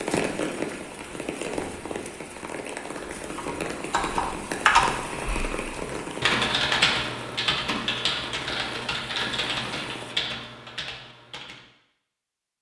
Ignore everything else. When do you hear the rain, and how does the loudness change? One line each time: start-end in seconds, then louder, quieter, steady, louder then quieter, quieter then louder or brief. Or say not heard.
0.0-10.2 quieter.